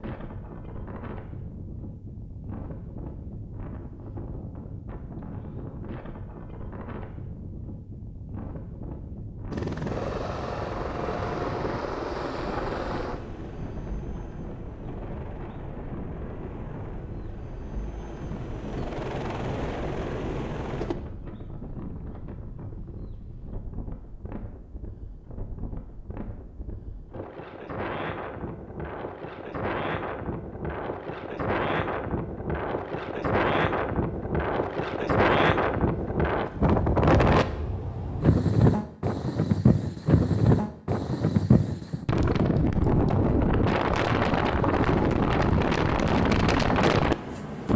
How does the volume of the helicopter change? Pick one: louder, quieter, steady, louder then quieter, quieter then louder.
quieter then louder.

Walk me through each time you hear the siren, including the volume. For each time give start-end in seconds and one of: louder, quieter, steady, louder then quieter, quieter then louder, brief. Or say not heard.
not heard.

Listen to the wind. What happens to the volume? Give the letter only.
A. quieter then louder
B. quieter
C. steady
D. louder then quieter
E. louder
E.